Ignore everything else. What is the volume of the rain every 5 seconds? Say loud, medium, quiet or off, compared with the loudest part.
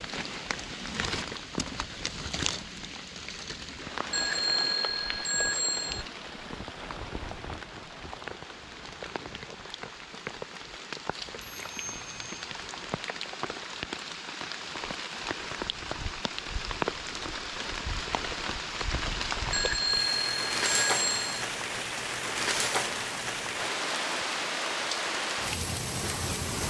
medium, medium, medium, loud, loud, loud.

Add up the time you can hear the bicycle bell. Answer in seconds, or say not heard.
5 s.